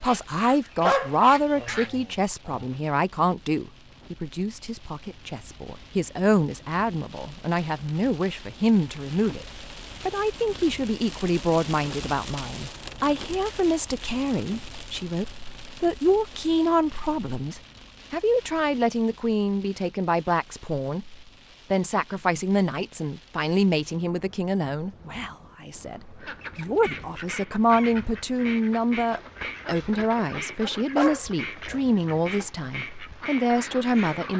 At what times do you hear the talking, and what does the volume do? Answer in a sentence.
You can hear the talking from 0.0 to 34.3 s, at a steady volume.